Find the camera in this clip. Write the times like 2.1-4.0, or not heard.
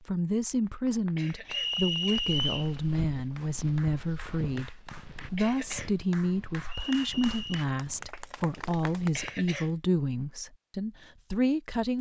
not heard.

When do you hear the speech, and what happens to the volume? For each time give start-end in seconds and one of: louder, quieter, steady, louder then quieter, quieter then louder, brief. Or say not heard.
0.0-11.9 steady.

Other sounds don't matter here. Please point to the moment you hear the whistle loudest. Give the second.
2 s.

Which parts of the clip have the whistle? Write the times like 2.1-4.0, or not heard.
1.4-2.7, 6.7-7.7.